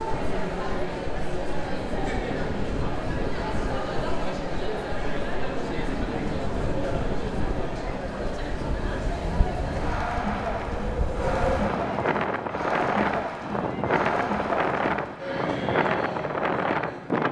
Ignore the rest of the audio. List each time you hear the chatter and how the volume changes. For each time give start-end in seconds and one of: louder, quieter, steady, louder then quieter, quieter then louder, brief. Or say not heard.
0.0-17.2 steady.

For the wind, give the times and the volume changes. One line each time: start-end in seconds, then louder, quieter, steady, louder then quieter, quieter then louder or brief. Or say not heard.
0.0-17.2 louder.